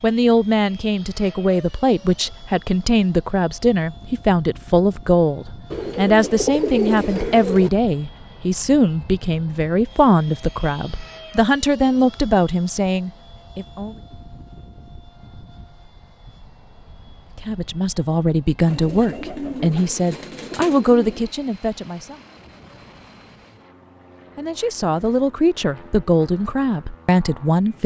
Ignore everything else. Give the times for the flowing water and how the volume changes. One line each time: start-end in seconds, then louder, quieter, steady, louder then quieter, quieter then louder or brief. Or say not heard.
not heard.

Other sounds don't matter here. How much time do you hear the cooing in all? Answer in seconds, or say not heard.
5 s.